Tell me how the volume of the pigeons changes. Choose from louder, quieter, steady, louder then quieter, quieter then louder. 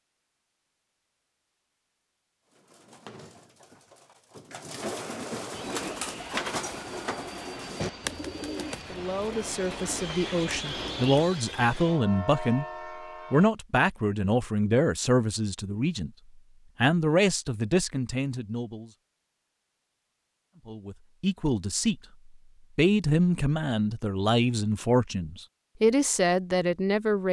louder then quieter.